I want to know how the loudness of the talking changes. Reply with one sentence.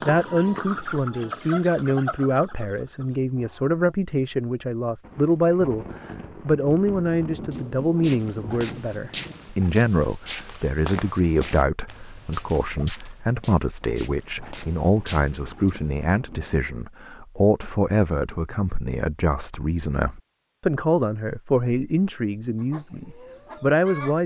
The volume of the talking stays about the same.